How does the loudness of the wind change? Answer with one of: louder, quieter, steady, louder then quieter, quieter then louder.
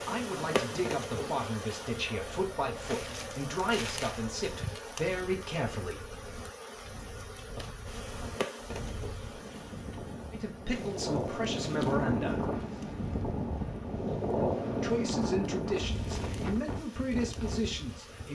louder.